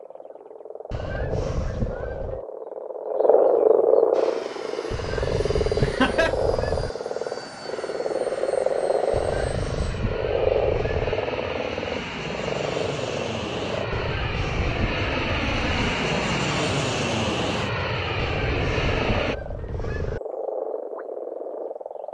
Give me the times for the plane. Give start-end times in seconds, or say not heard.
4.1-19.4.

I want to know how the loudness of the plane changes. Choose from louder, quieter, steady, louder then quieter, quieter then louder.
louder.